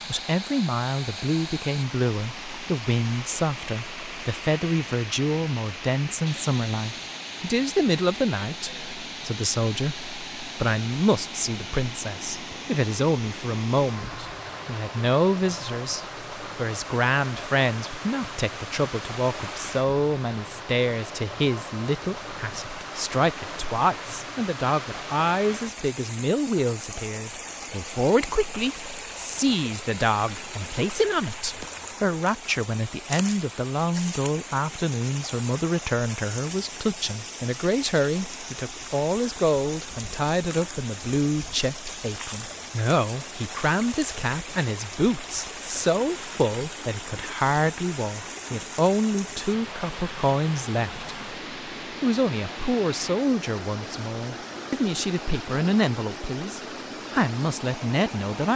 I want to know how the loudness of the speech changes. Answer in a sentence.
The volume of the speech stays about the same.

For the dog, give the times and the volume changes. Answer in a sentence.
You can't hear the dog here.